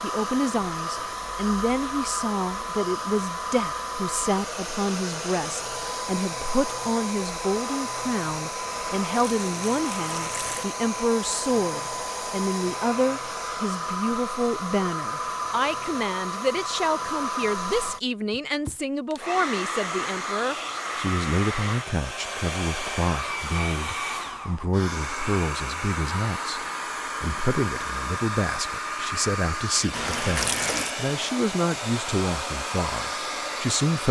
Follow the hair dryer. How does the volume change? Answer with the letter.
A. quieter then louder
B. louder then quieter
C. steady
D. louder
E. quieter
C.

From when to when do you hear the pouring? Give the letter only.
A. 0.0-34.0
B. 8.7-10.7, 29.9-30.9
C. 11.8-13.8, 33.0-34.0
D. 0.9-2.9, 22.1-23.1
B.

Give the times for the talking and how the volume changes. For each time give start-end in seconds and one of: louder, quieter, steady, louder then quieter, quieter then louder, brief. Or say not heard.
0.0-34.0 steady.